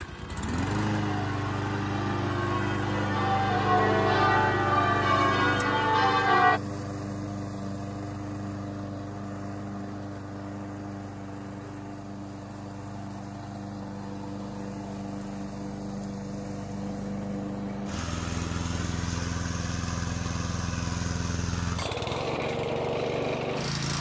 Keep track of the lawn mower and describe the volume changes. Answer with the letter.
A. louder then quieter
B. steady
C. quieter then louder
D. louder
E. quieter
C.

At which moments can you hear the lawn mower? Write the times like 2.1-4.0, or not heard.
0.0-23.9.